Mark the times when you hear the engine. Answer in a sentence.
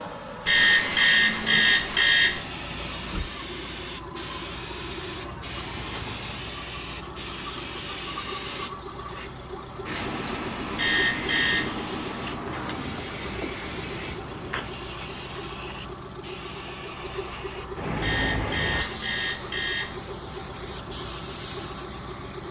You can hear the engine from 0.0 to 22.4 s.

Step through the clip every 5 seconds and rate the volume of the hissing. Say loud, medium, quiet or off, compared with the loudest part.
loud, loud, loud, loud, medium.